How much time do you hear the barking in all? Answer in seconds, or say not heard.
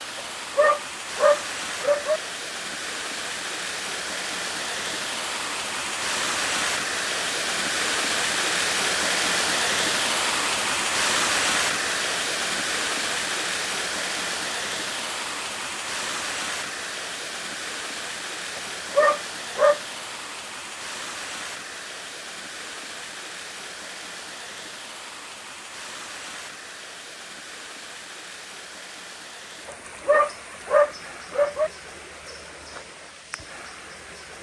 5 s.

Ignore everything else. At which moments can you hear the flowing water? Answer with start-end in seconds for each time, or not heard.
0.0-34.3.